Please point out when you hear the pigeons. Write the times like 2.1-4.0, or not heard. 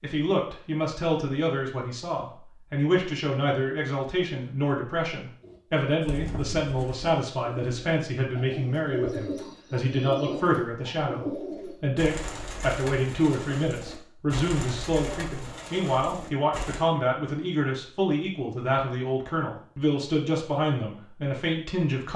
5.4-16.8.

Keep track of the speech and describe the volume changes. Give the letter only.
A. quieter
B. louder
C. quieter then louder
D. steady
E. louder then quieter
D.